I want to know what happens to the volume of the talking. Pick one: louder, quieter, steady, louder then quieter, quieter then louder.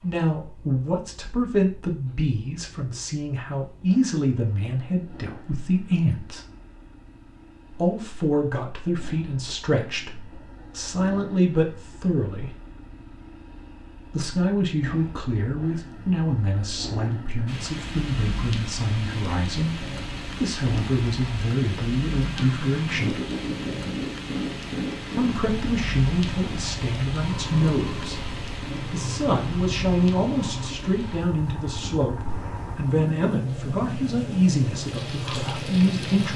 steady.